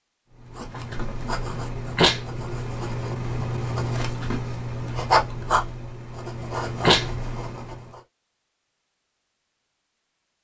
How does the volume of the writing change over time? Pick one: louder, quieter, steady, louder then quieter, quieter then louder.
louder then quieter.